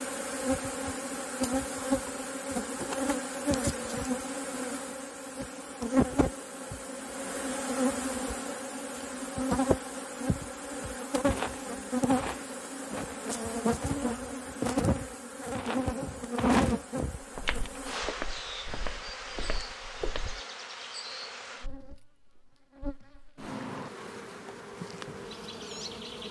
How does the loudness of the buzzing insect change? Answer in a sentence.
The volume of the buzzing insect goes down.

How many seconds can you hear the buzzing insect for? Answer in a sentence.
The buzzing insect can be heard for 26 seconds in total.